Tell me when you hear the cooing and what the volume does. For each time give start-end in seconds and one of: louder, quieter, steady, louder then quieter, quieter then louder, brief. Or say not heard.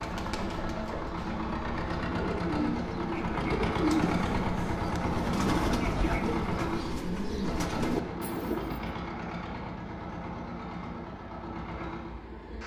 0.0-8.8 louder.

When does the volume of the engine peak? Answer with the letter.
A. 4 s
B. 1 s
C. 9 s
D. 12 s
A.